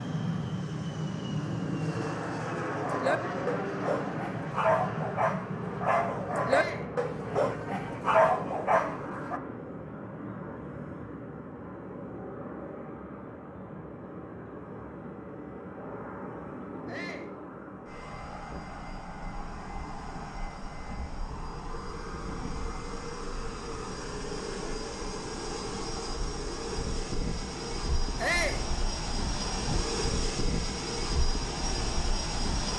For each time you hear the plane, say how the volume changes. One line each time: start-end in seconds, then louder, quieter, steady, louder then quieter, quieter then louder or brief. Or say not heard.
0.0-32.7 quieter then louder.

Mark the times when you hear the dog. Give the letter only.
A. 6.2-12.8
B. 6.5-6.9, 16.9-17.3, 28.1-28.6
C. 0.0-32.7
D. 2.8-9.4
D.